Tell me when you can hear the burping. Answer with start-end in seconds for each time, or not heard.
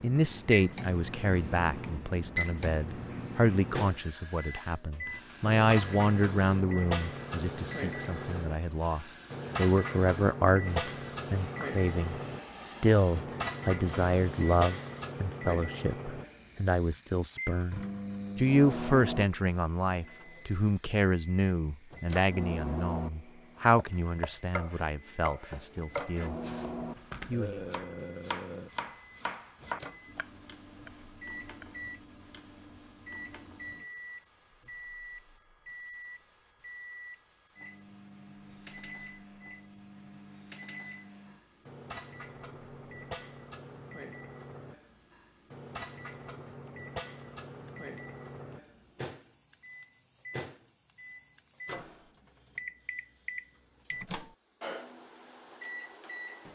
27.3-28.7.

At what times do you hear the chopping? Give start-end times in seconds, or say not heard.
23.8-31.8.